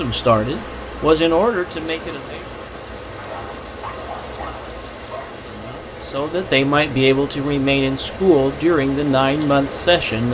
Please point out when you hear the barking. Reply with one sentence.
The barking can be heard from 3.1 to 5.3 s.